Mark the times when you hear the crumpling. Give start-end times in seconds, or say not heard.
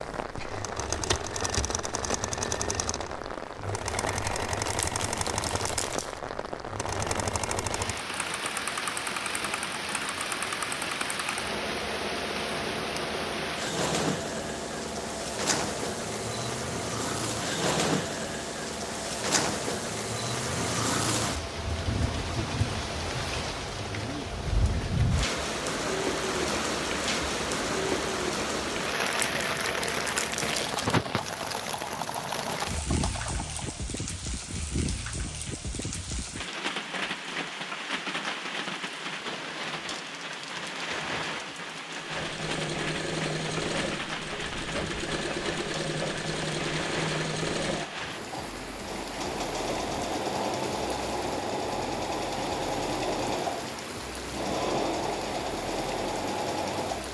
4.7-6.2, 29.1-31.0.